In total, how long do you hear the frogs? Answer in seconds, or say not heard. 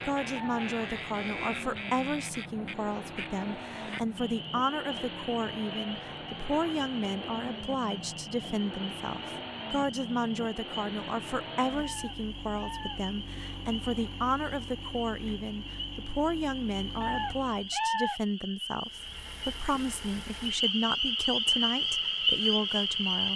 23 s.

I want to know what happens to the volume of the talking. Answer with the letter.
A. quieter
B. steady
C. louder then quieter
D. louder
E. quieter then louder
B.